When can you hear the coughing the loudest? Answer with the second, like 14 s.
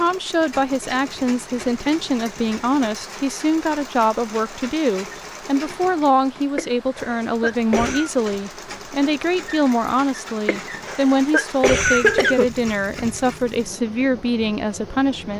12 s.